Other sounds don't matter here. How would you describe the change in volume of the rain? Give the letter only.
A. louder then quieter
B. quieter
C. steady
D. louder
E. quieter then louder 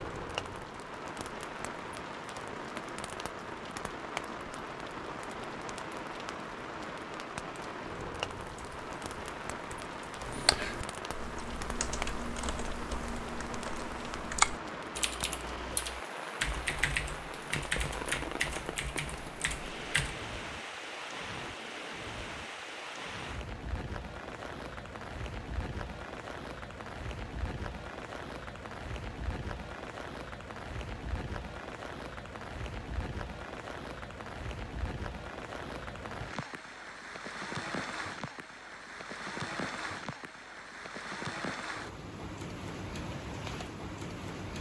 C.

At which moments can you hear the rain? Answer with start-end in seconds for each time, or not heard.
0.0-44.5.